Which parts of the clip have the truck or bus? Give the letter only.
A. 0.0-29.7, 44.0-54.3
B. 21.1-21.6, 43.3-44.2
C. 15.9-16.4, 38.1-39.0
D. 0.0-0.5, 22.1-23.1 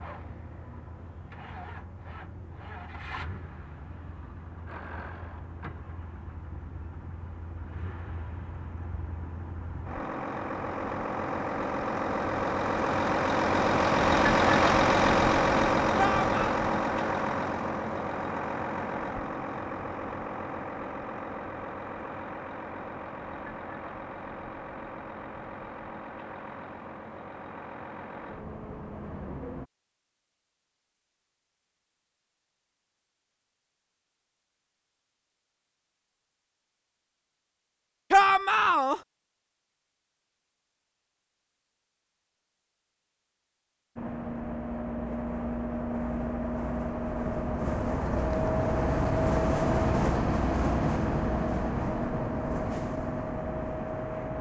A.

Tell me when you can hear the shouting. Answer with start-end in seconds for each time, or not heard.
15.9-16.4, 38.1-39.0.